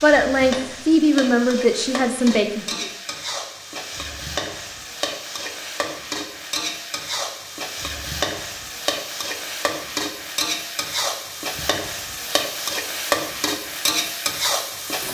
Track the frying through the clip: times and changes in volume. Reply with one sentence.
You can hear the frying from 0.0 to 15.0 s, getting louder.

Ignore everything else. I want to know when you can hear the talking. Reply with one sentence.
The talking can be heard from 0.0 to 2.9 s.